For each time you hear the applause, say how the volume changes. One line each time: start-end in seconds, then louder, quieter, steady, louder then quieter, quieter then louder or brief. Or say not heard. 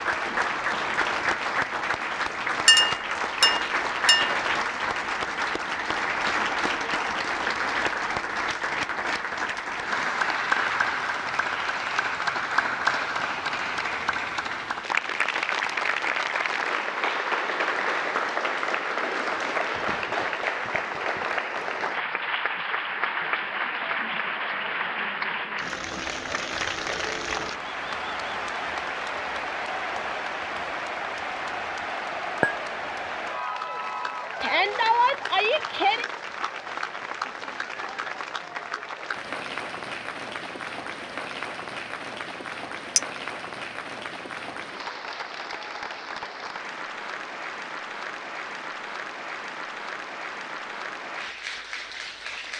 0.0-52.5 quieter.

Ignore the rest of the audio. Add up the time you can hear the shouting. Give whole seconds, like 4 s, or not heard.
2 s.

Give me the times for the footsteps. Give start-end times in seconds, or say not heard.
not heard.